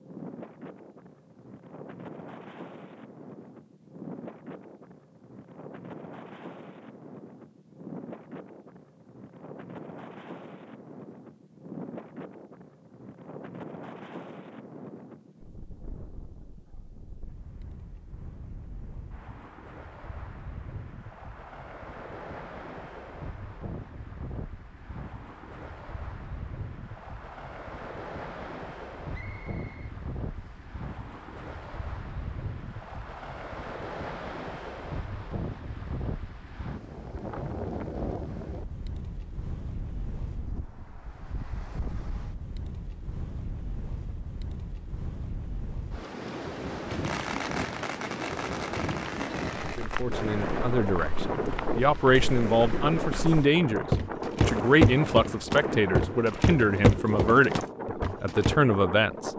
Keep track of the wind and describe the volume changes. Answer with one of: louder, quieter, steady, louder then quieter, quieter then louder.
louder.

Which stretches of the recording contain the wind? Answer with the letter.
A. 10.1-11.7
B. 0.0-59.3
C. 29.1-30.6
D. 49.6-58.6
B.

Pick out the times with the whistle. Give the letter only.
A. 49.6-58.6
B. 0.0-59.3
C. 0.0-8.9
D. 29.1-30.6
D.